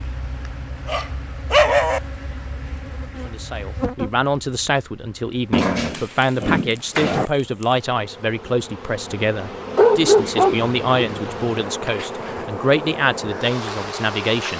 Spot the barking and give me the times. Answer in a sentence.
You can hear the barking from 0.8 to 2.0 s, from 5.5 to 7.3 s and from 9.8 to 11.2 s.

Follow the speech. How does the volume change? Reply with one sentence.
The loudness of the speech stays about the same.